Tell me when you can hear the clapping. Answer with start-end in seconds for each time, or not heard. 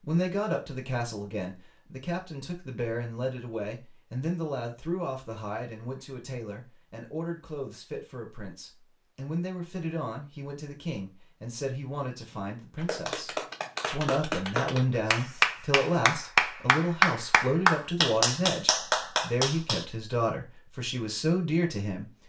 12.8-19.9.